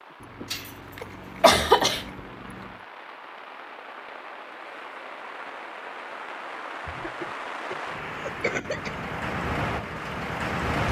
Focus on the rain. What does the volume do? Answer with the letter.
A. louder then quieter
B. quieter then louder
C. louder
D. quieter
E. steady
C.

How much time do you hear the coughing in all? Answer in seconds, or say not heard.
4 s.